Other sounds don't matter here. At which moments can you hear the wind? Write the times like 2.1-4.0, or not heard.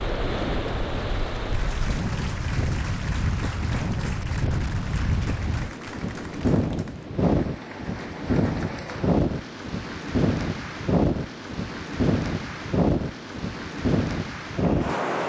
0.0-15.2.